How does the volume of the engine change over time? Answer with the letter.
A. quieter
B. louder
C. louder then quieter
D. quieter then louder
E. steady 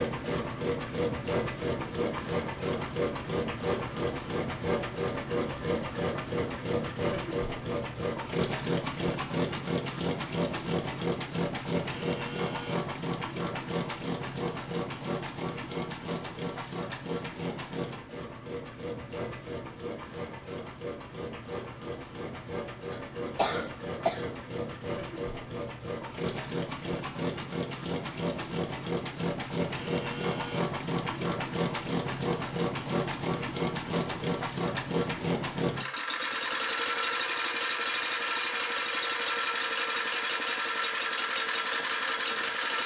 D.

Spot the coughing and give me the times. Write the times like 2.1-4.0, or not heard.
22.9-24.3.